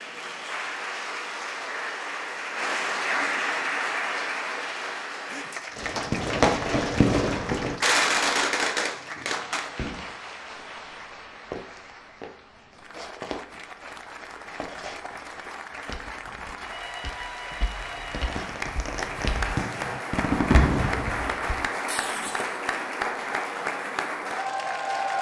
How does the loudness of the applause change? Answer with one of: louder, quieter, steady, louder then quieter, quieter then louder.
quieter then louder.